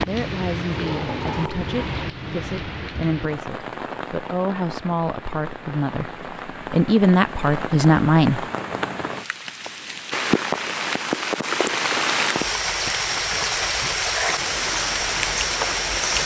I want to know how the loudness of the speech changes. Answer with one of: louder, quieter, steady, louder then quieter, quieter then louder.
louder.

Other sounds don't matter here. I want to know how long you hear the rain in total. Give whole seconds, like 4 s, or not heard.
16 s.